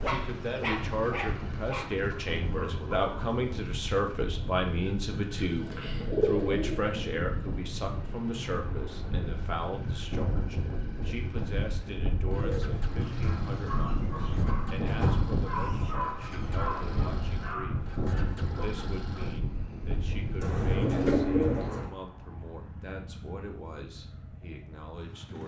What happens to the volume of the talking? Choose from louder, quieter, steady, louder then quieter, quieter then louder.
quieter.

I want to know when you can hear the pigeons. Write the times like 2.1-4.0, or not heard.
5.6-6.8, 12.3-14.4, 20.4-21.9.